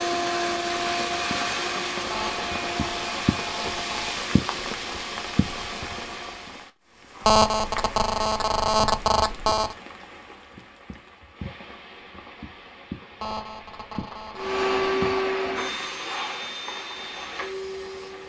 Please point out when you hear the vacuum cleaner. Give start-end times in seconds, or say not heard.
0.0-6.5, 14.3-18.2.